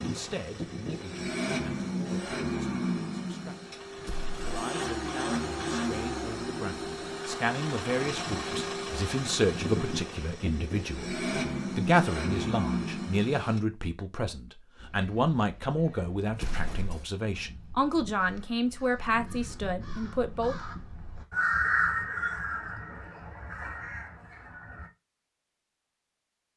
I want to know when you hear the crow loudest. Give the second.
22 s.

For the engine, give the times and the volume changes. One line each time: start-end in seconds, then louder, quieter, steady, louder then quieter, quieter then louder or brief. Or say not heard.
0.0-13.6 steady.